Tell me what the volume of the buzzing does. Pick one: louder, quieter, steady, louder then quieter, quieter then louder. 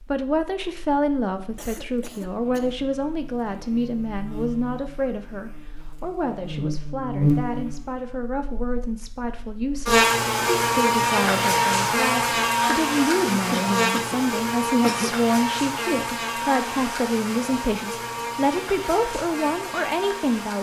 louder then quieter.